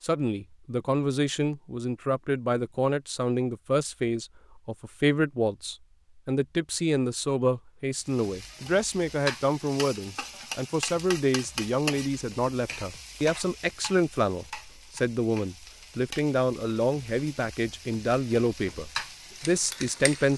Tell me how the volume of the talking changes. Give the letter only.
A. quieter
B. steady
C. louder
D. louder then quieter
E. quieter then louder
B.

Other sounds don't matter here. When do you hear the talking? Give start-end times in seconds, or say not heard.
0.0-20.3.